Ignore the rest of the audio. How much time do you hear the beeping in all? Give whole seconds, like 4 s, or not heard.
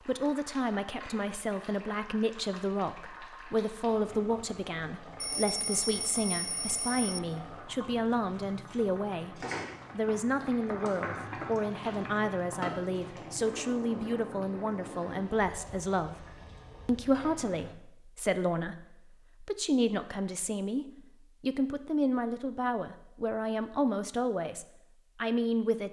2 s.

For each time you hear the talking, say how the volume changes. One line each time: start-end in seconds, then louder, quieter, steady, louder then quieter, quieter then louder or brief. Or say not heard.
0.1-16.2 steady
16.9-25.8 steady.